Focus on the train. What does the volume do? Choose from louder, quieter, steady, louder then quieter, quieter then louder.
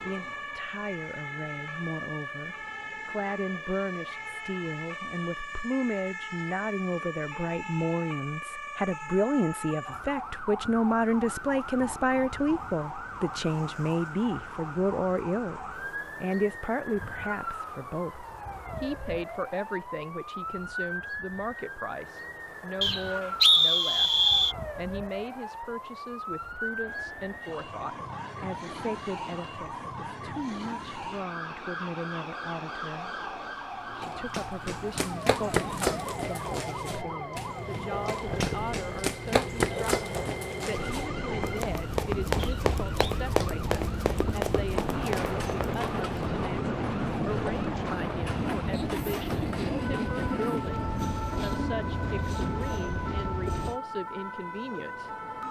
louder.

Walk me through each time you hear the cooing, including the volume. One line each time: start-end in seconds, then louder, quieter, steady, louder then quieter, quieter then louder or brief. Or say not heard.
not heard.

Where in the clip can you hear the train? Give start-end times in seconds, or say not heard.
26.8-53.8.